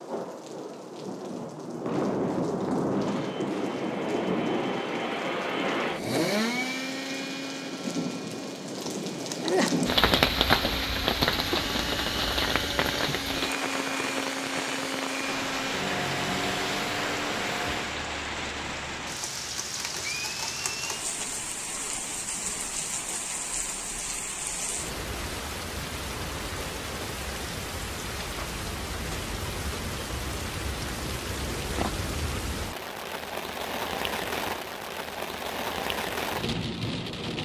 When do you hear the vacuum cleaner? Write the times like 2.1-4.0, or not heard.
3.0-17.9.